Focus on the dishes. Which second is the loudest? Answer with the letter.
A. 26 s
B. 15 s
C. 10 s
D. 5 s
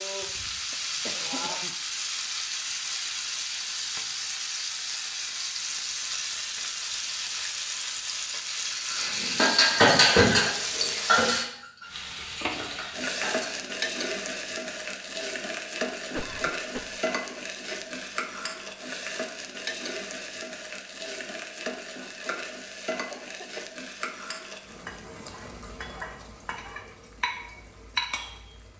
C.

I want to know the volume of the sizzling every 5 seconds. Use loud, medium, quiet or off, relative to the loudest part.
loud, loud, loud, loud, medium, medium.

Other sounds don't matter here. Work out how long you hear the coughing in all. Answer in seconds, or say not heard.
3 s.